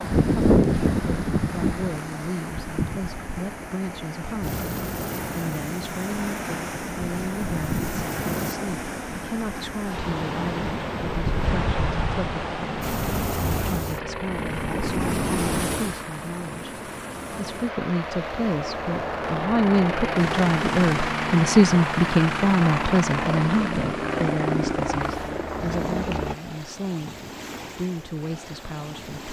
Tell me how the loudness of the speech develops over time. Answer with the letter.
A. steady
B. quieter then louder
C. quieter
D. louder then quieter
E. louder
D.